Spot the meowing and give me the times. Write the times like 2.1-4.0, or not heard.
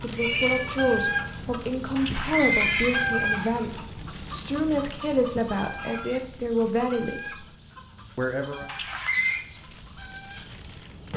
0.1-1.2.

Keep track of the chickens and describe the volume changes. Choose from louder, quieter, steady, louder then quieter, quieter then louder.
quieter.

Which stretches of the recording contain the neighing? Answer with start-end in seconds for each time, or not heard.
1.9-3.0, 8.7-9.4.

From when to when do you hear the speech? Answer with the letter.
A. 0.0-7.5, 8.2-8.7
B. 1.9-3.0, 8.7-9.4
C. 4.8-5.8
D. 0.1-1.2
A.